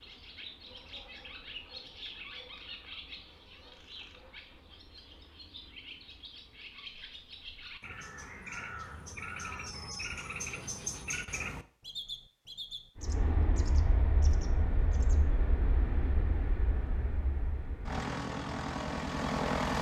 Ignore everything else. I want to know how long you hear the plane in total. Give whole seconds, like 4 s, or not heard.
7 s.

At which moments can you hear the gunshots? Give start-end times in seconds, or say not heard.
not heard.